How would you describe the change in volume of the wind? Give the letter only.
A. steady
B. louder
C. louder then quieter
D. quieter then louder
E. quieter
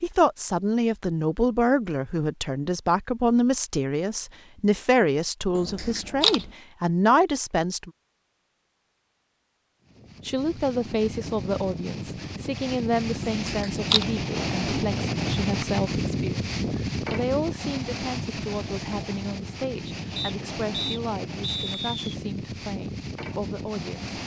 C.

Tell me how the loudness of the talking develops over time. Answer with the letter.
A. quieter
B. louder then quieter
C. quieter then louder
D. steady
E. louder
A.